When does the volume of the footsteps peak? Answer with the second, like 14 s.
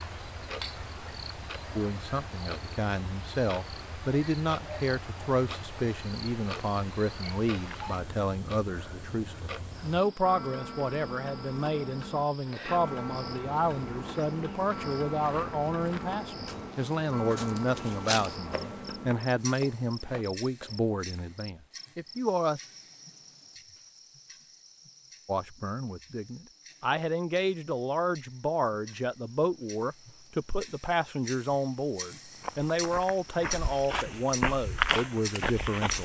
35 s.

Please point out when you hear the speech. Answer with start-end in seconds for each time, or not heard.
1.8-22.6, 25.2-35.9.